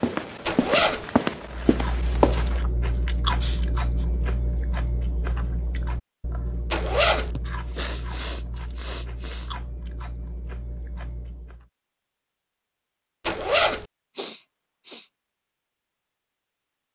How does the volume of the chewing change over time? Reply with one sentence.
The loudness of the chewing goes down.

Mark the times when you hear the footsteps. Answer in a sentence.
You can hear the footsteps from 0.0 to 2.6 s.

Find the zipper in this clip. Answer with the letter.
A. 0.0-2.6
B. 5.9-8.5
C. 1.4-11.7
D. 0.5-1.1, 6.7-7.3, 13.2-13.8
D.